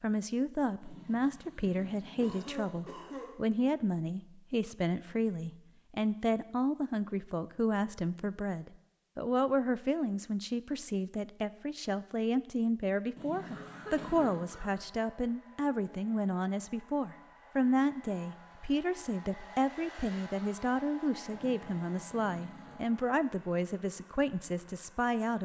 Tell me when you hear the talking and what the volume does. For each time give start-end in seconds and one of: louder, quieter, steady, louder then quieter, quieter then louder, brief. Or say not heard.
0.0-25.3 steady.